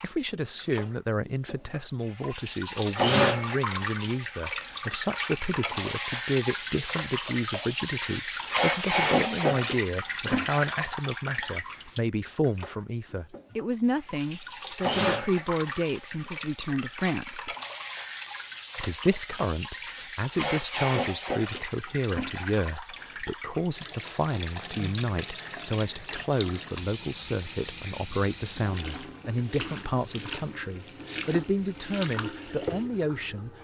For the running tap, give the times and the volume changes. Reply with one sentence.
The running tap can be heard from 0.0 to 33.5 s, getting quieter.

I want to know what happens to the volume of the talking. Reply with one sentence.
The loudness of the talking stays about the same.